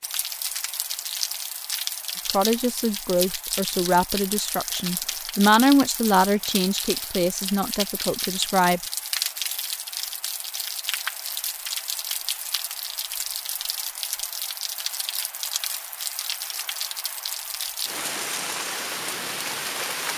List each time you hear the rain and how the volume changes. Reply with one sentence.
You can hear the rain from 0.0 to 20.1 s, at a steady volume.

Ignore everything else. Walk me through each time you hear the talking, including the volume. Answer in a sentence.
The talking can be heard from 2.3 to 8.8 s, getting louder then quieter.